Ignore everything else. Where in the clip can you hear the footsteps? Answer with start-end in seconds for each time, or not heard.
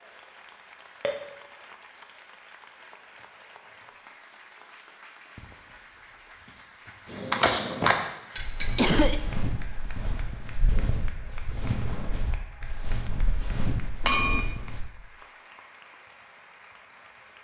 7.0-14.8.